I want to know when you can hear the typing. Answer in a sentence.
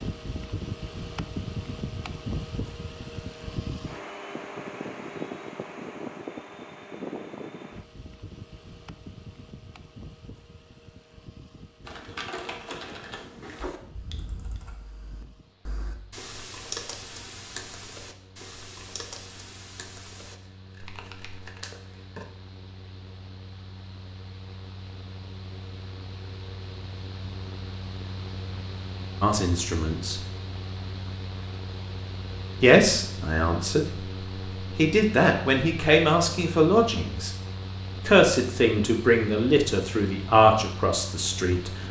The typing can be heard from 11.8 to 21.6 s.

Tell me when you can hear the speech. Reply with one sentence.
The speech can be heard from 29.2 to 30.2 s, from 32.6 to 33.9 s, from 34.8 to 37.3 s and from 38.0 to 41.7 s.